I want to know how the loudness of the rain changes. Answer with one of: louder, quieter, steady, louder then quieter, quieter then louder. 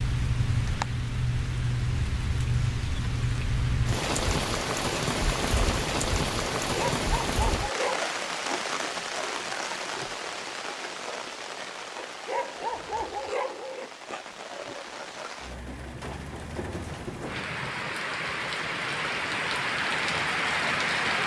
quieter then louder.